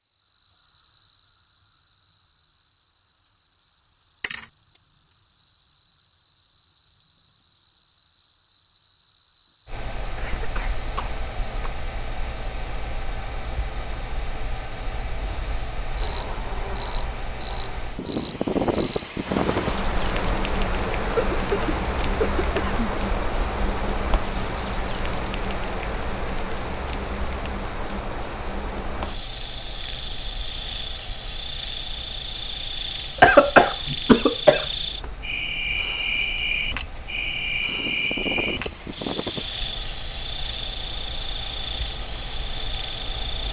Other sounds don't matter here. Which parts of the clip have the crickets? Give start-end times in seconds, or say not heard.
0.0-43.4.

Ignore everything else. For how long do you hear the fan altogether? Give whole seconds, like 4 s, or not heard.
34 s.